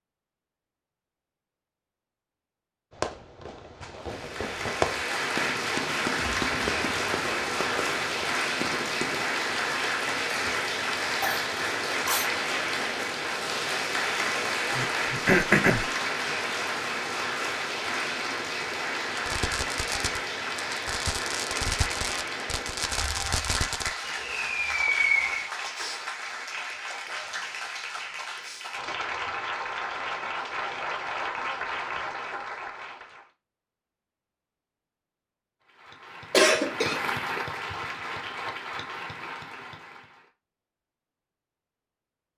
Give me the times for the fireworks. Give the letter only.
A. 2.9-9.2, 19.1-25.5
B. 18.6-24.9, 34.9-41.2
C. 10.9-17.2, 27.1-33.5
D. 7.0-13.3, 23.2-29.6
A.